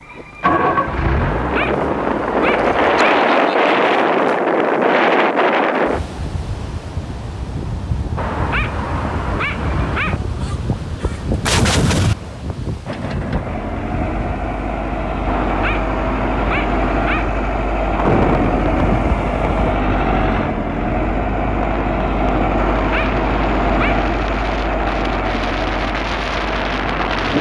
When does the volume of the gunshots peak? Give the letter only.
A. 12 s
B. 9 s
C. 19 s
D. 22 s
A.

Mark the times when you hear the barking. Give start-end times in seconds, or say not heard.
1.2-3.2, 8.2-10.2, 15.2-17.3, 22.6-24.1.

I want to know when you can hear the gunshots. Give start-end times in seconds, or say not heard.
10.2-12.2.